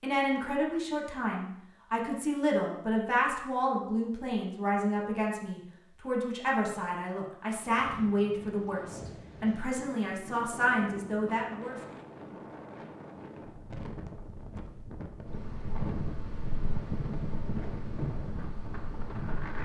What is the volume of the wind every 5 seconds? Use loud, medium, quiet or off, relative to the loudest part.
off, medium, medium, loud.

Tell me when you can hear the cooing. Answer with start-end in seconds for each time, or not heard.
not heard.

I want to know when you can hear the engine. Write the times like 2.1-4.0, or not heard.
15.2-19.6.